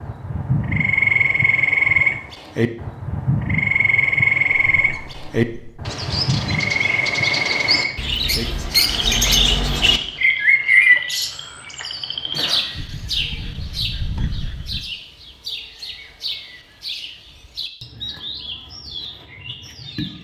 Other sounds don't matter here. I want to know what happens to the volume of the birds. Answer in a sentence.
The loudness of the birds goes up, then down.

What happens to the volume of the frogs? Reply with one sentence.
The volume of the frogs goes down.